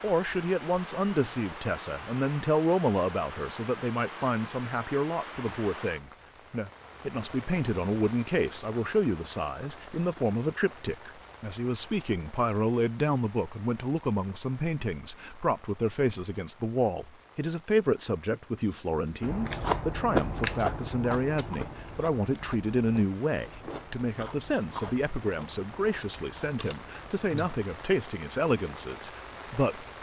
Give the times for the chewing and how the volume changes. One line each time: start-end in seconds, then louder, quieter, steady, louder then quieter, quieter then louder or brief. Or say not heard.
19.2-27.6 quieter.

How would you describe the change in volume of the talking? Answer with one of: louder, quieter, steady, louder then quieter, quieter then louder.
steady.